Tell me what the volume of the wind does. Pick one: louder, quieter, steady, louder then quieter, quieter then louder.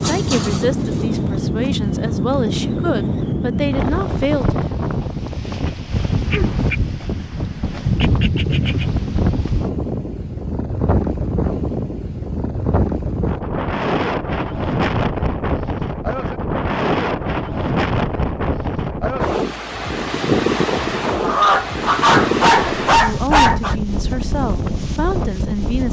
steady.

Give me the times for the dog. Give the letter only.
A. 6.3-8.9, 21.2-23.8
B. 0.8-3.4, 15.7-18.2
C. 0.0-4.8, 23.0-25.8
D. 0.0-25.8
A.